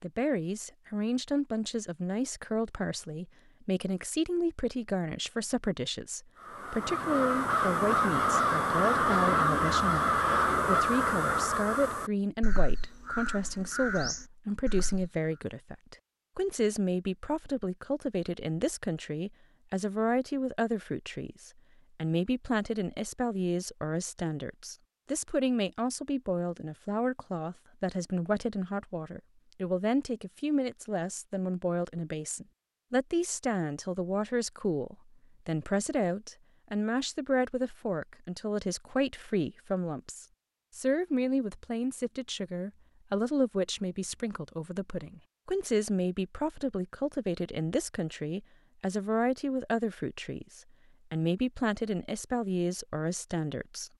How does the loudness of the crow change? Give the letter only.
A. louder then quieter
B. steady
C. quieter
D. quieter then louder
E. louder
C.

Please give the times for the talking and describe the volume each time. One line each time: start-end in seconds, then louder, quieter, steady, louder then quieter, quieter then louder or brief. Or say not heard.
0.0-53.9 steady.